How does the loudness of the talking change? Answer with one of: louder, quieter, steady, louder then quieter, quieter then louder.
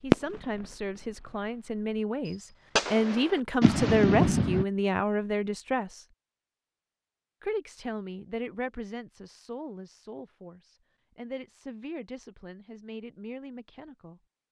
louder then quieter.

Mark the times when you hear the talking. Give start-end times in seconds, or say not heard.
0.0-6.0, 7.4-14.2.